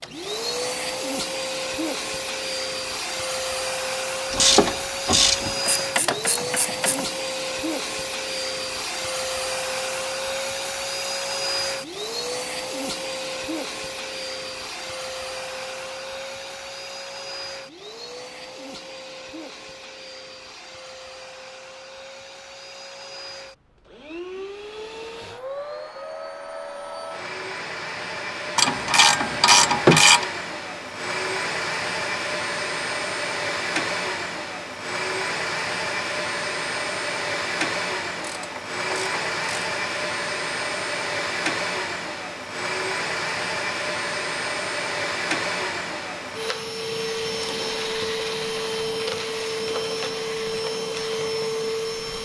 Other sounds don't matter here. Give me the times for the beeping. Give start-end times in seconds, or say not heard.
not heard.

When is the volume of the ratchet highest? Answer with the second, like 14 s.
30 s.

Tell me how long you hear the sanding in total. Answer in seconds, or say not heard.
not heard.